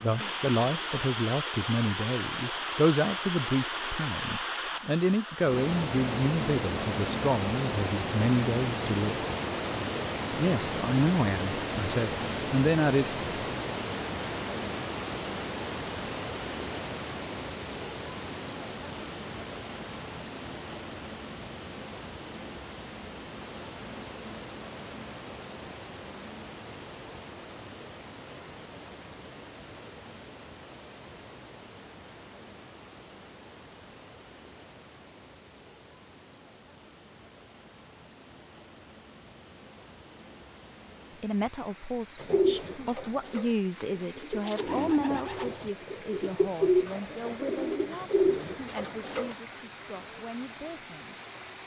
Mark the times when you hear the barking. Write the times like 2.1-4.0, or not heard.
not heard.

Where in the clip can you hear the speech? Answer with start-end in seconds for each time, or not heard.
0.0-9.2, 10.3-13.2, 41.1-51.1.